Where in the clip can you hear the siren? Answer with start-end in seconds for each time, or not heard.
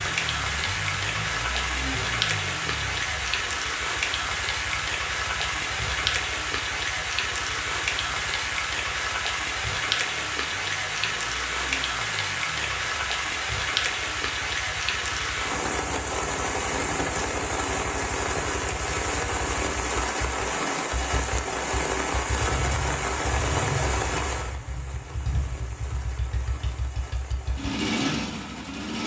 not heard.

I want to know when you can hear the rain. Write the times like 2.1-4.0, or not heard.
0.0-28.9.